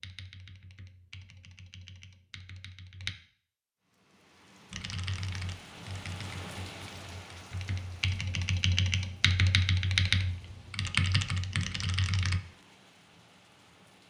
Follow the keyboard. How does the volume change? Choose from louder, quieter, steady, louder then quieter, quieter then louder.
louder.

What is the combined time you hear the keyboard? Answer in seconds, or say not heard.
11 s.